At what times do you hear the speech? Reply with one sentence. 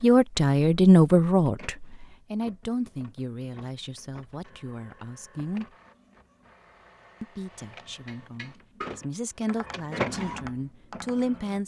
You can hear the speech from 0.0 to 5.7 s and from 7.2 to 11.6 s.